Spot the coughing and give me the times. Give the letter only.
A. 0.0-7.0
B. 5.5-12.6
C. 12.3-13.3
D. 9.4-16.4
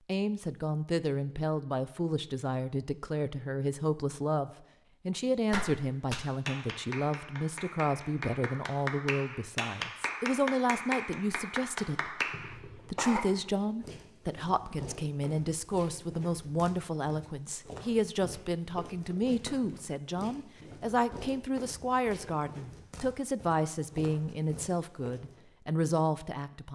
C.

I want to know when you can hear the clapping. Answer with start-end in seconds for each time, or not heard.
5.5-12.6.